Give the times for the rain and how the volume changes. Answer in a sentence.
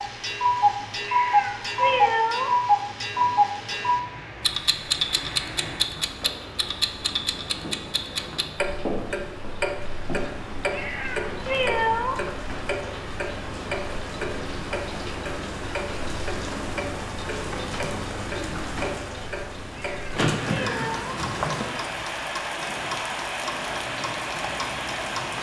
You can hear the rain from 0.0 to 25.3 s, getting louder.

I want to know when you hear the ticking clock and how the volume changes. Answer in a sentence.
The ticking clock can be heard from 0.0 to 25.3 s, getting quieter.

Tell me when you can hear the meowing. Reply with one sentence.
You can hear the meowing from 1.1 to 2.5 s, from 10.7 to 12.2 s and from 19.8 to 21.2 s.